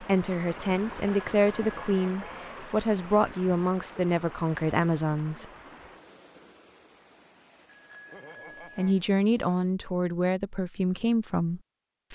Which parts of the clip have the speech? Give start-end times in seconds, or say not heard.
0.0-5.5, 8.8-12.1.